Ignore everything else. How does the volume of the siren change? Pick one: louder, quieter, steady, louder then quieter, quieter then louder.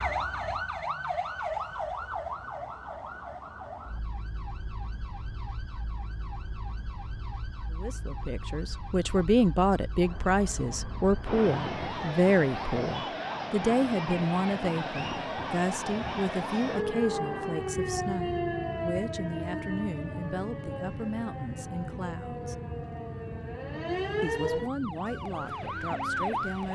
quieter then louder.